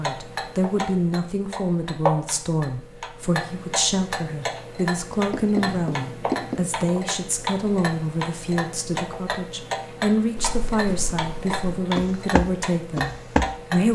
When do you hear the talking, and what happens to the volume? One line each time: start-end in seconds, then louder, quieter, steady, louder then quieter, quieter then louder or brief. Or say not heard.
0.0-13.9 steady.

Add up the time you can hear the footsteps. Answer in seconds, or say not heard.
3 s.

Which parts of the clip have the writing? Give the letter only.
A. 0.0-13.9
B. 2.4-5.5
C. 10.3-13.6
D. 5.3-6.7
D.